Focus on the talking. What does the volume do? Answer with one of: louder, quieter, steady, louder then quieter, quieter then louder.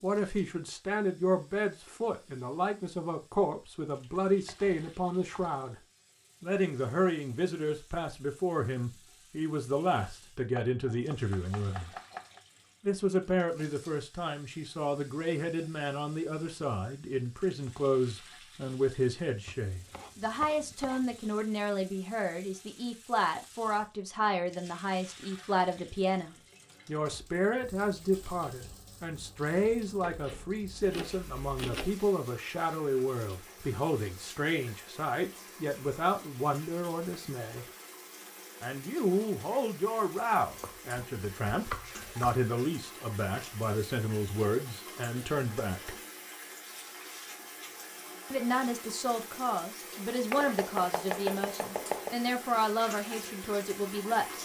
steady.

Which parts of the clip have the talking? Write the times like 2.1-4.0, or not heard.
0.0-5.8, 6.4-11.9, 12.8-37.6, 38.6-46.0, 48.3-54.4.